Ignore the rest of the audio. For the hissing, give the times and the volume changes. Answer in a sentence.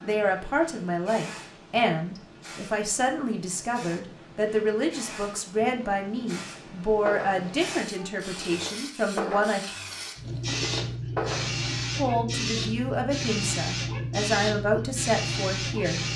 You can hear the hissing from 0.0 to 16.1 s, getting louder.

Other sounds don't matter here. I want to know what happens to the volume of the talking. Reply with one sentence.
The loudness of the talking stays about the same.